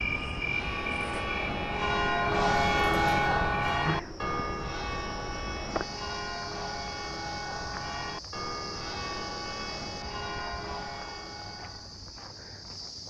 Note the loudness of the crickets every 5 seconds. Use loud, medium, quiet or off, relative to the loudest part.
loud, medium, medium.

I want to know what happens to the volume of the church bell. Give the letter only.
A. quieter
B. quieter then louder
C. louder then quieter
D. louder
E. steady
A.